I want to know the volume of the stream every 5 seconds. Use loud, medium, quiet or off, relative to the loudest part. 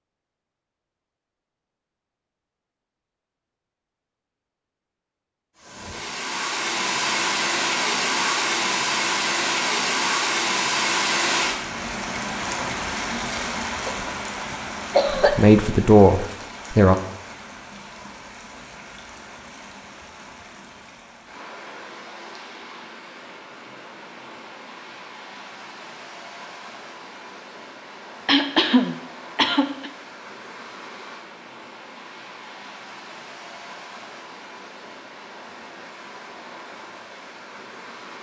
off, loud, loud, quiet, quiet, quiet, quiet, quiet.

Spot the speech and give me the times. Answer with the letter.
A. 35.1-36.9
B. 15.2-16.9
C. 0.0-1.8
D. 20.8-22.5
B.